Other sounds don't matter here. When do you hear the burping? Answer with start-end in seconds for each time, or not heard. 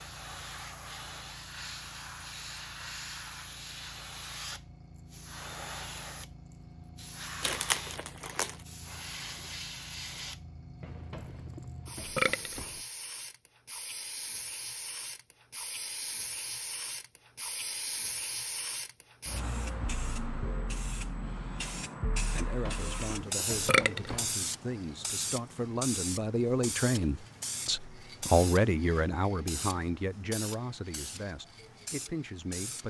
10.8-12.8, 22.4-24.3.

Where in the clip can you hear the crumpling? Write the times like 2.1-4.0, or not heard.
7.4-8.6.